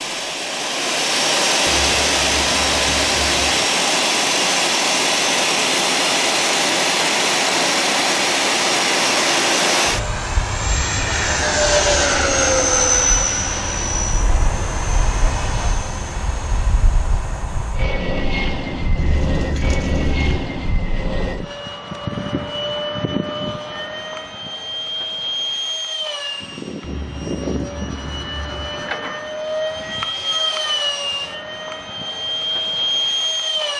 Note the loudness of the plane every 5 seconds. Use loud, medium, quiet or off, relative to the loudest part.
loud, loud, loud, medium, medium, medium, medium.